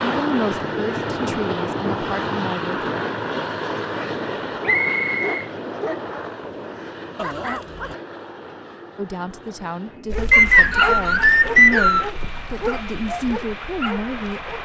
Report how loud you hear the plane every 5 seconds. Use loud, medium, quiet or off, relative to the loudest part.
loud, medium, medium.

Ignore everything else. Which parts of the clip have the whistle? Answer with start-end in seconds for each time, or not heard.
4.7-5.5, 10.3-12.1.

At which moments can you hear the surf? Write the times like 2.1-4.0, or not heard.
not heard.